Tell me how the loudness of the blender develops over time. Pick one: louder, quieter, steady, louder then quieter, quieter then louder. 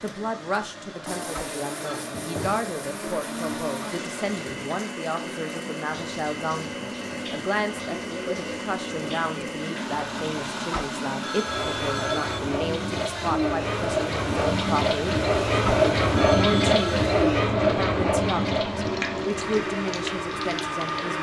steady.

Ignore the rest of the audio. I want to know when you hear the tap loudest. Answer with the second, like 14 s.
16 s.